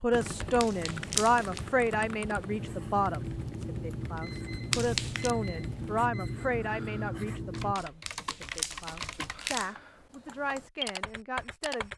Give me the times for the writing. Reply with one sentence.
You can hear the writing from 2.4 to 7.8 s.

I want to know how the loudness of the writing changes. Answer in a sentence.
The volume of the writing stays about the same.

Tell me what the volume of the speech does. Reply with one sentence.
The loudness of the speech goes down.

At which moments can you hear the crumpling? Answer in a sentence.
The crumpling can be heard from 0.6 to 1.6 s, from 4.7 to 5.3 s and from 8.1 to 9.7 s.